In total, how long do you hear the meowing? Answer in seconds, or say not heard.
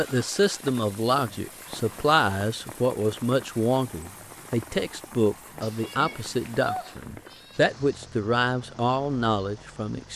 2 s.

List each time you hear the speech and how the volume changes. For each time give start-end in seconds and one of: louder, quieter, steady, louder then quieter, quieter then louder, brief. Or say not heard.
0.0-10.1 steady.